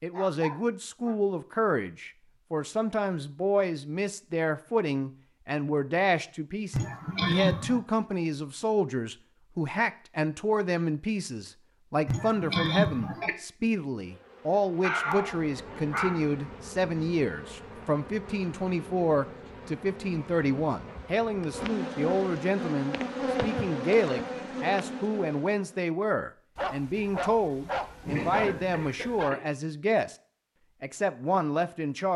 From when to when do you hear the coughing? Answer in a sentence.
The coughing can be heard from 6.7 to 7.8 s, from 12.1 to 13.3 s and from 26.9 to 29.4 s.